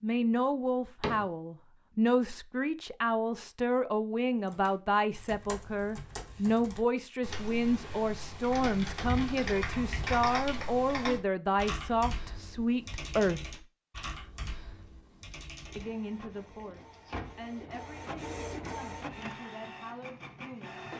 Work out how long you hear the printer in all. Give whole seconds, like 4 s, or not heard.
5 s.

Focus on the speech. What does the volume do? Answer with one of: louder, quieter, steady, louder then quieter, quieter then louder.
quieter.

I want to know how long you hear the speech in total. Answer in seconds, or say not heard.
19 s.